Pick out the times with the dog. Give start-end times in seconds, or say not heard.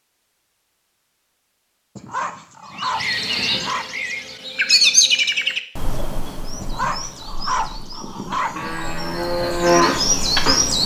1.9-3.9, 6.6-8.8.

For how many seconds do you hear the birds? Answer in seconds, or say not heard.
8 s.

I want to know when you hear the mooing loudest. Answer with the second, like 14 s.
10 s.